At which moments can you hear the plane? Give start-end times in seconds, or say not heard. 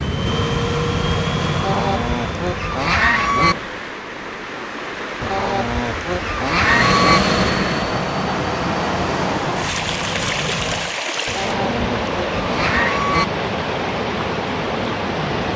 0.0-3.9, 6.5-10.9.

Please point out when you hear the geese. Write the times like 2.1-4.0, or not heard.
1.6-3.5, 5.2-7.2, 11.2-13.2.